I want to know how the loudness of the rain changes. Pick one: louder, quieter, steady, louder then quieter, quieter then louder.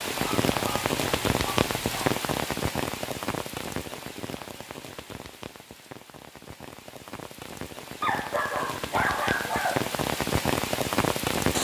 quieter then louder.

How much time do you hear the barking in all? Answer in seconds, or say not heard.
4 s.